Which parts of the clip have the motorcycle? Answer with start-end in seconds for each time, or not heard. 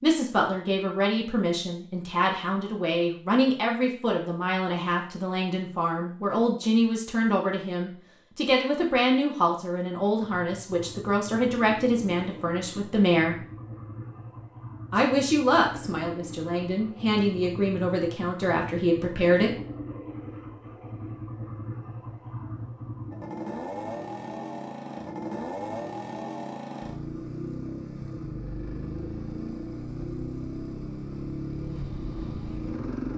10.2-33.1.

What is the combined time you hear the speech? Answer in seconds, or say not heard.
18 s.